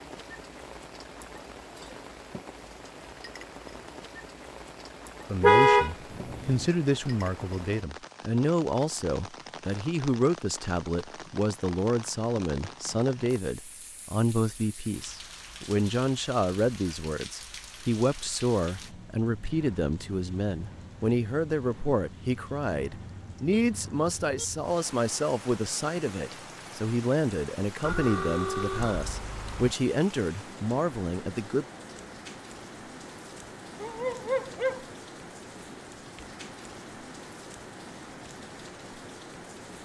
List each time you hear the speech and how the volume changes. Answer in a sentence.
The speech can be heard from 5.2 to 31.6 s, at a steady volume.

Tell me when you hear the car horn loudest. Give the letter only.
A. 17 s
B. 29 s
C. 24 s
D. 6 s
D.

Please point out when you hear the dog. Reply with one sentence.
The dog can be heard from 33.8 to 34.9 s.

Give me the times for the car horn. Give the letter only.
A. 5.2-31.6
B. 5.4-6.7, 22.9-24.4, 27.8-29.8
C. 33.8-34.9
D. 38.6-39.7
B.